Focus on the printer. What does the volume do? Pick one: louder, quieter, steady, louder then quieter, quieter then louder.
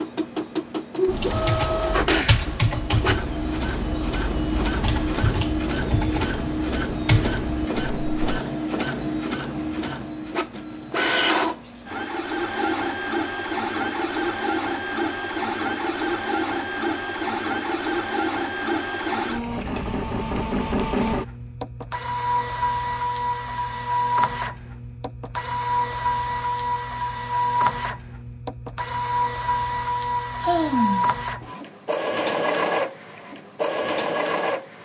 steady.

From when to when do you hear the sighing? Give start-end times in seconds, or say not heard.
2.0-2.5, 30.4-31.1.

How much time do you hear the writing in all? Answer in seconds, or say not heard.
not heard.